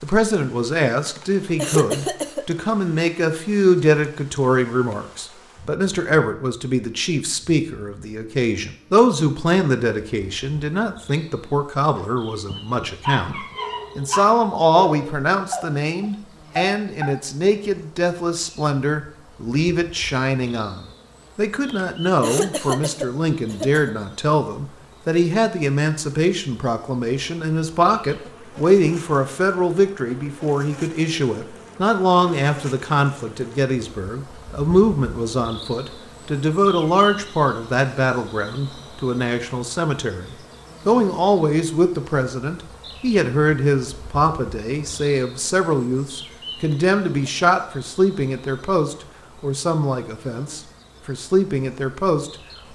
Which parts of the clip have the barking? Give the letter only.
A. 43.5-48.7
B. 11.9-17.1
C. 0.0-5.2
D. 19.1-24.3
B.